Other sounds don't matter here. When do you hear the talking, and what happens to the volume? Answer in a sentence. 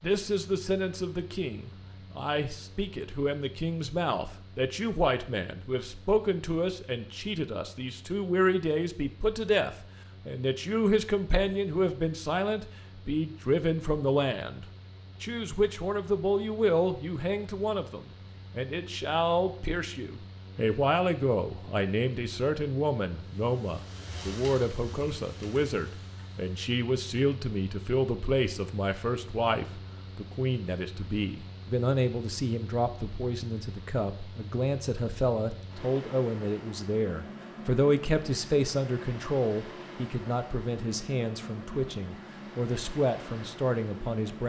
The talking can be heard from 0.0 to 44.4 s, at a steady volume.